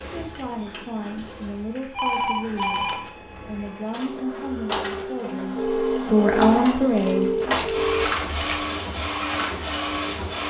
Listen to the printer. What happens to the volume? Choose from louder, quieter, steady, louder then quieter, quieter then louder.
louder.